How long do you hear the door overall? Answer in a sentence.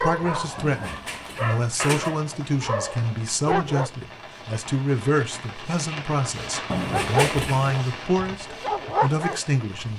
The door can be heard for 3 seconds in total.